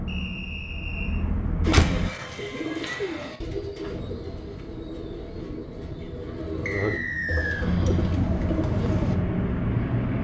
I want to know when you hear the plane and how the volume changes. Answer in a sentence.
The plane can be heard briefly from 0.0 to 2.1 s; and from 3.9 to 10.1 s, getting louder.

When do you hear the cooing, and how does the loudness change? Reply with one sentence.
You can hear the cooing from 1.6 to 9.2 s, getting quieter then louder.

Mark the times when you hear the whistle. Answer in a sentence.
You can hear the whistle from 0.1 to 1.2 s and from 6.7 to 7.7 s.